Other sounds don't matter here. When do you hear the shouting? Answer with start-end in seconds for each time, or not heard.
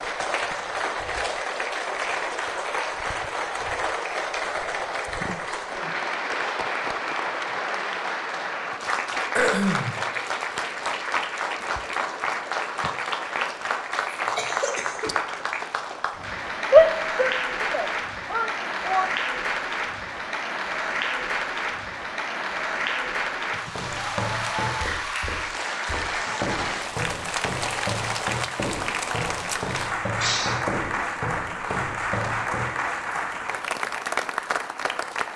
16.7-19.1.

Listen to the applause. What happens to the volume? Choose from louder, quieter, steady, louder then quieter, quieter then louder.
steady.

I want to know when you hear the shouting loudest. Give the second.
17 s.